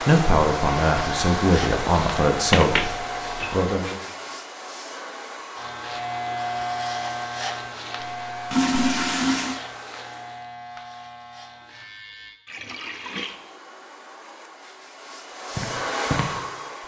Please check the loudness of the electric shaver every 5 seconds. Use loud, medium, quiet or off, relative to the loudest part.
loud, loud, medium, off.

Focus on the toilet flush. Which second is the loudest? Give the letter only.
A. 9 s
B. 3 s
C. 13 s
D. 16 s
A.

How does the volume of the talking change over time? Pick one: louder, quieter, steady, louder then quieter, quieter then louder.
quieter.